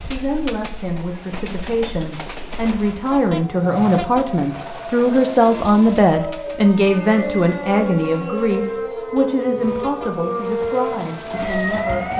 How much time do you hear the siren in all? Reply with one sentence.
You can hear the siren for 9 seconds altogether.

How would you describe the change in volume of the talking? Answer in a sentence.
The volume of the talking goes up, then down.